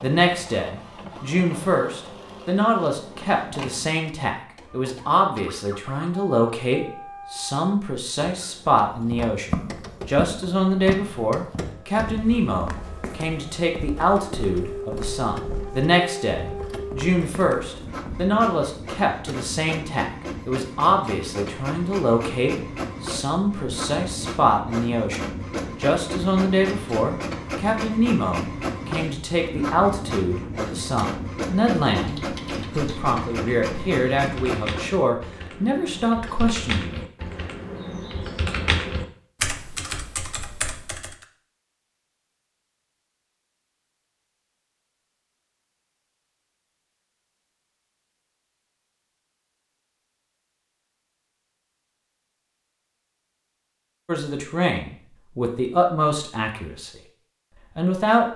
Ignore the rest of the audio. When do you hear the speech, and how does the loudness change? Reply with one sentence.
You can hear the speech from 0.0 to 37.0 s, at a steady volume; briefly from 54.0 to 57.0 s; and briefly from 57.8 to 58.3 s.